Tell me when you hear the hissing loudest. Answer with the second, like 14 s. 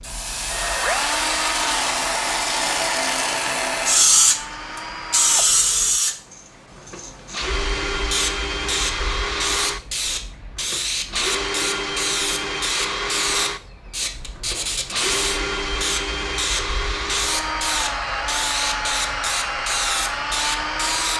4 s.